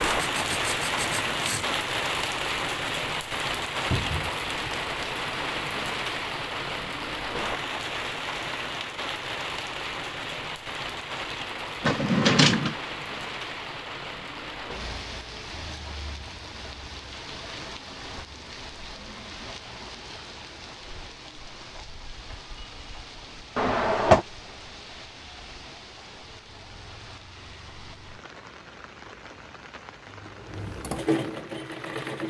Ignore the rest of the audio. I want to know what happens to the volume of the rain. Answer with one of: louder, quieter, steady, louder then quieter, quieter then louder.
quieter.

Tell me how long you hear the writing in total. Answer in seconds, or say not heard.
2 s.